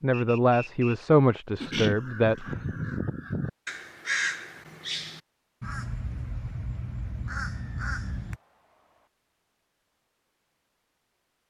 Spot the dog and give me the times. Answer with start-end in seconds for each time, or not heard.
not heard.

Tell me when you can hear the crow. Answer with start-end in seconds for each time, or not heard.
1.6-8.4.